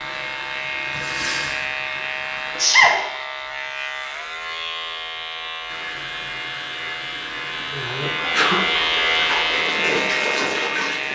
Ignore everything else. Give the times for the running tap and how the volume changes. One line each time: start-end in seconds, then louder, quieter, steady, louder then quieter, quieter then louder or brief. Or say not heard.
0.0-2.6 brief
5.7-11.1 louder.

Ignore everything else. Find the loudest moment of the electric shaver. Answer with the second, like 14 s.
9 s.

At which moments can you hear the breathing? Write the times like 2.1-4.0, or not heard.
not heard.